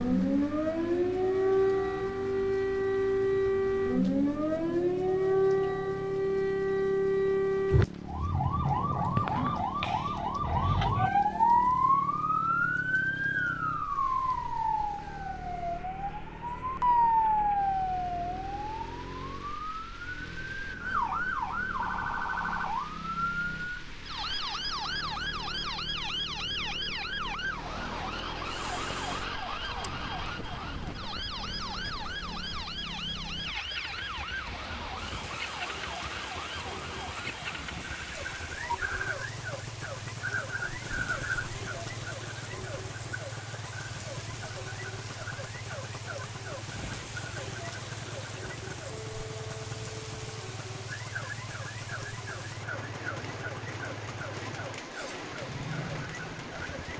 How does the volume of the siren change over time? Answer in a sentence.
The loudness of the siren goes down.